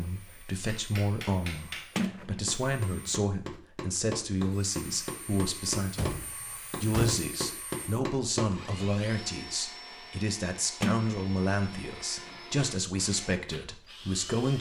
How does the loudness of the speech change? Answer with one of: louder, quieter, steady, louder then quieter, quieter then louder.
steady.